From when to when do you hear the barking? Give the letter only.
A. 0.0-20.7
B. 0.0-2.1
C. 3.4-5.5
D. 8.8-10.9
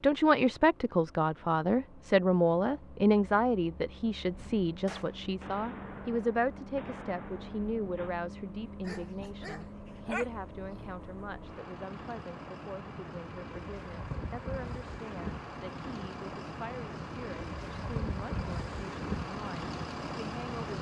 D.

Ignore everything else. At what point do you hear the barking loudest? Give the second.
10 s.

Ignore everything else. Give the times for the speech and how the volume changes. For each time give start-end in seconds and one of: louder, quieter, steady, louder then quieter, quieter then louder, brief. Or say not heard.
0.0-20.7 quieter.